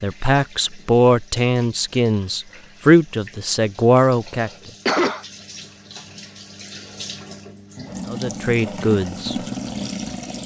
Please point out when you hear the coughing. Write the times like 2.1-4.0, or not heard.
4.0-5.2.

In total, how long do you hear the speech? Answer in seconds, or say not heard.
6 s.